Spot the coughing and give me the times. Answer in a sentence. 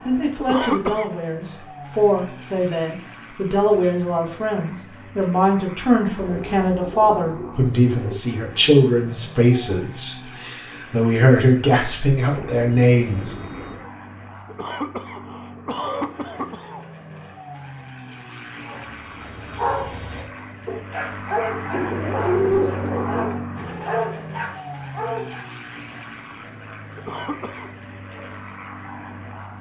The coughing can be heard from 0.3 to 1.1 s, from 14.4 to 16.9 s and from 26.9 to 27.8 s.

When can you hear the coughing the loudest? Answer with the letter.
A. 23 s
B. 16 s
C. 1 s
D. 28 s
C.